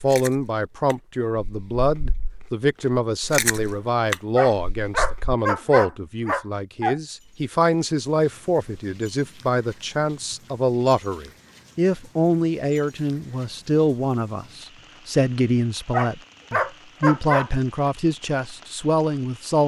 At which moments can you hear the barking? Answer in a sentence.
The barking can be heard from 4.3 to 7.0 s and from 15.9 to 17.9 s.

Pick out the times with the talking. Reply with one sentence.
The talking can be heard from 0.0 to 19.6 s.